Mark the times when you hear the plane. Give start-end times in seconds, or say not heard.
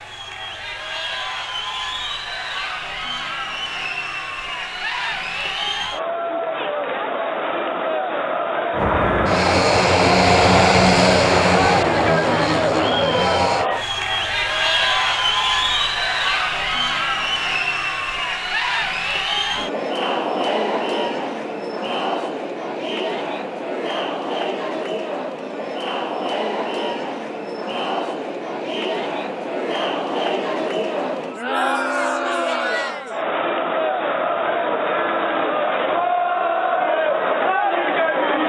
8.7-13.7.